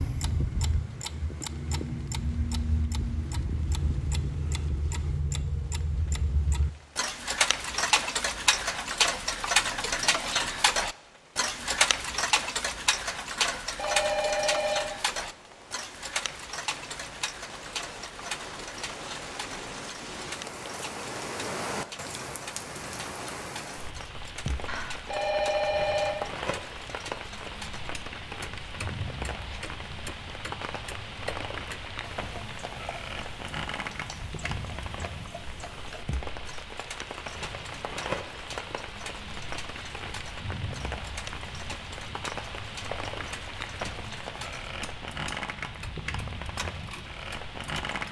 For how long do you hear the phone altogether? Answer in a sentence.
The phone can be heard for 3 seconds in total.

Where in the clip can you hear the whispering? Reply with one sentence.
The whispering can't be heard in this clip.